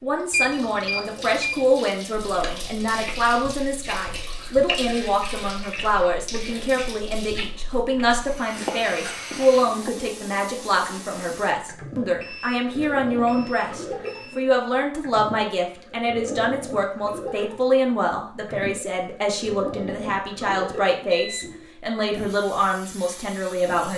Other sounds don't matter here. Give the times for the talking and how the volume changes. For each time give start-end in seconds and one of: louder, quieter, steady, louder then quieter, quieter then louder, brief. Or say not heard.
0.0-23.9 steady.